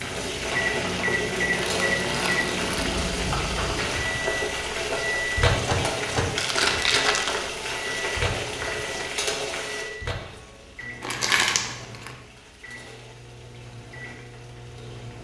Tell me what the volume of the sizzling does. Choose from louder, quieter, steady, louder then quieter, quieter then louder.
quieter.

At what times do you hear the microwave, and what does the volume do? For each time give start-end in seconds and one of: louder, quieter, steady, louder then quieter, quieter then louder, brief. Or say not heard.
0.0-15.1 quieter.